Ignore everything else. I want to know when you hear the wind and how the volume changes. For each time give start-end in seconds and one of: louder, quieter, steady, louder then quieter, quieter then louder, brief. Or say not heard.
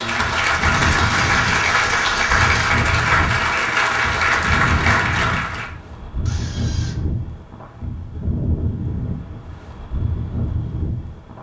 0.0-11.3 steady.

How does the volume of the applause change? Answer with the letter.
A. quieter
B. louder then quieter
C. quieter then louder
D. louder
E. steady
E.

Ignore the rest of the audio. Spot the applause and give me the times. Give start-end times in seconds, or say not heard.
0.0-5.7.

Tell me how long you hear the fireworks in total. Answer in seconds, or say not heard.
not heard.